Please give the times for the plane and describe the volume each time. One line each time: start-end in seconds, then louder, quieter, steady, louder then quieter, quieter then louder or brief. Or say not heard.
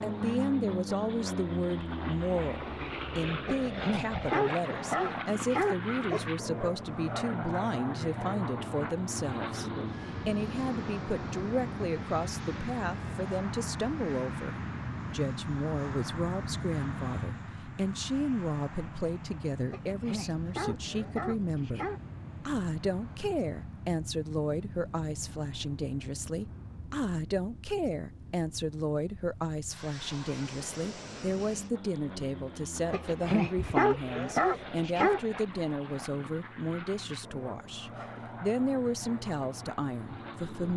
0.0-40.7 quieter.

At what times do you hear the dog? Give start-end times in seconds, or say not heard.
3.5-6.3, 19.7-22.0, 32.9-35.2.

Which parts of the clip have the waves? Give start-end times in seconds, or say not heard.
not heard.